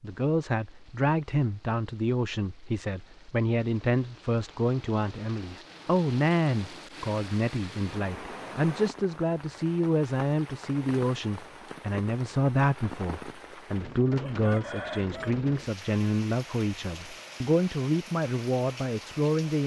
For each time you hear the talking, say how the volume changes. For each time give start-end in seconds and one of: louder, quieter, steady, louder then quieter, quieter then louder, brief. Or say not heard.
0.0-19.6 steady.